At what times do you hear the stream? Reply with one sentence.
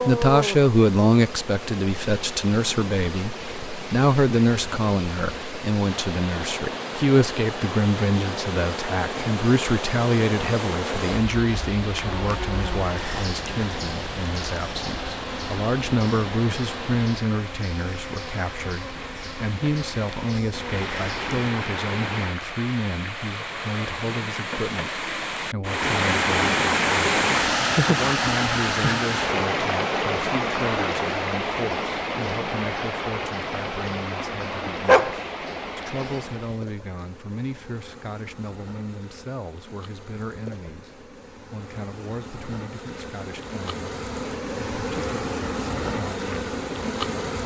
You can hear the stream from 0.0 to 36.6 s.